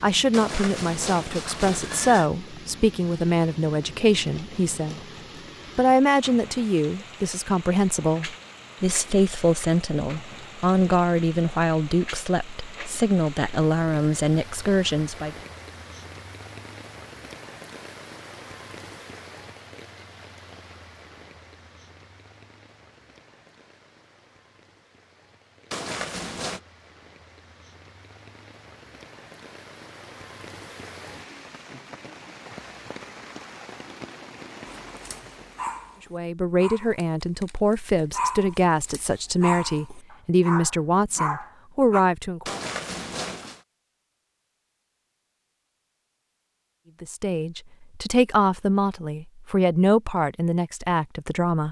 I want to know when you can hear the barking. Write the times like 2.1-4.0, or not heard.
34.6-42.0.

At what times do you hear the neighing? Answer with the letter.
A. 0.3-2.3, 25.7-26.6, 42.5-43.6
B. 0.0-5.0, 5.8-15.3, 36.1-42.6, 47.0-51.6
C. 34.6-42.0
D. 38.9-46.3
A.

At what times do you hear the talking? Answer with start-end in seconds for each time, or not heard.
0.0-5.0, 5.8-15.3, 36.1-42.6, 47.0-51.6.